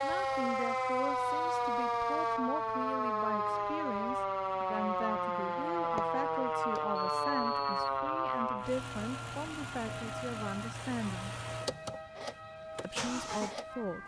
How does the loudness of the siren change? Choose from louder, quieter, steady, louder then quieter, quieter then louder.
quieter.